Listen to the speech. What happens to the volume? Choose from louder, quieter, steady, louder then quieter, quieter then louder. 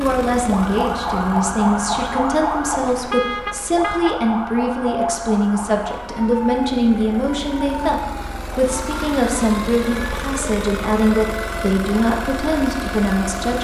steady.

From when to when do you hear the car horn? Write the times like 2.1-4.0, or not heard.
2.8-4.2.